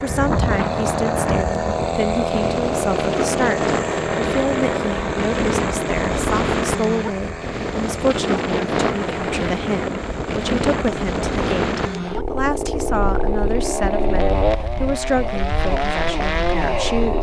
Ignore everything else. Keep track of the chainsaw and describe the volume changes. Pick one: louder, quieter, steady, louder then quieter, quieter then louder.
quieter then louder.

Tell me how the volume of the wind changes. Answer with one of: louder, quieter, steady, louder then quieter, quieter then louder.
quieter.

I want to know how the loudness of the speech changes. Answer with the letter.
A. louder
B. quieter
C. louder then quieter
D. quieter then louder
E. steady
E.